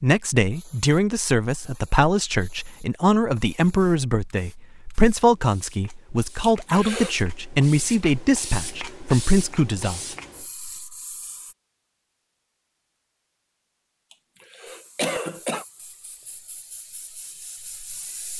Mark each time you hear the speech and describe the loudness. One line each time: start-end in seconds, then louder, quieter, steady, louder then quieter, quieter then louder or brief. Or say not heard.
0.0-10.0 steady.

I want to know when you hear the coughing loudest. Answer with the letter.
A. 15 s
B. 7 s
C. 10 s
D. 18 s
A.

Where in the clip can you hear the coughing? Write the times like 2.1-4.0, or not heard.
6.5-7.2, 14.1-15.7.